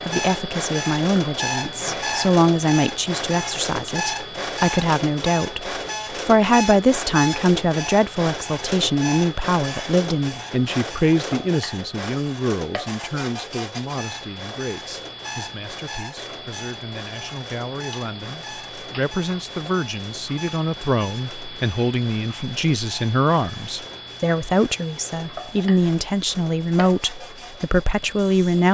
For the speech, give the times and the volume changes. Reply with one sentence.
The speech can be heard from 0.0 to 28.6 s, getting quieter then louder.